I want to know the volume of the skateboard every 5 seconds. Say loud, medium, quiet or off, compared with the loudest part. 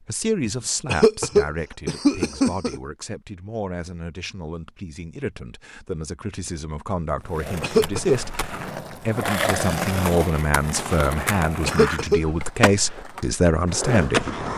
off, loud, loud.